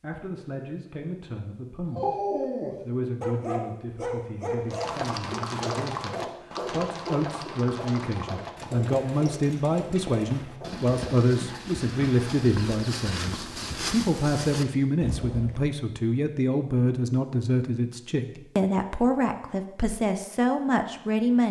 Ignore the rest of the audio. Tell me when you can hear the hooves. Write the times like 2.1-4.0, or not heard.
4.7-15.7.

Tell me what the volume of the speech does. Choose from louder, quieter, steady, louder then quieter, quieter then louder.
louder.